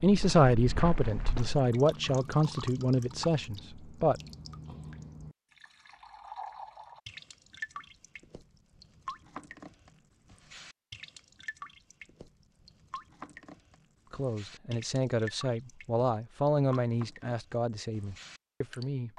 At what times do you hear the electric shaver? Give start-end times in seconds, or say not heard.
not heard.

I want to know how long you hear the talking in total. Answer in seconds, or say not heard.
9 s.